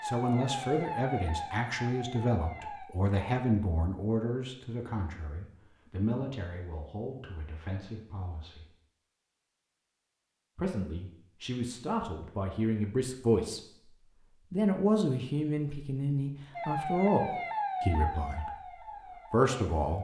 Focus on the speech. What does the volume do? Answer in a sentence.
The volume of the speech goes down, then up.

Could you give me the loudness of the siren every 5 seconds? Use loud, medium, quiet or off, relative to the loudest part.
loud, off, off, loud.